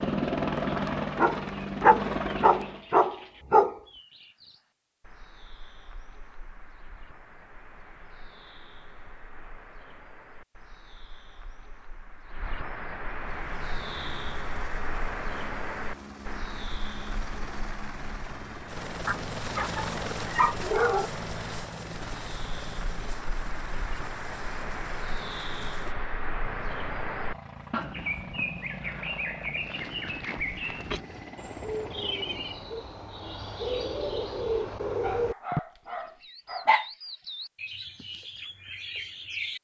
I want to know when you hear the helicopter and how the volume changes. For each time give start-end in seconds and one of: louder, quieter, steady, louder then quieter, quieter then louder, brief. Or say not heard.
0.0-2.9 brief
13.2-32.7 louder then quieter.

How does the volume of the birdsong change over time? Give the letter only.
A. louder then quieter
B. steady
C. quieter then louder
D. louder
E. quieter
D.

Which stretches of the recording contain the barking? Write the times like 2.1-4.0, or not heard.
1.1-3.8, 19.1-21.1, 35.0-36.9.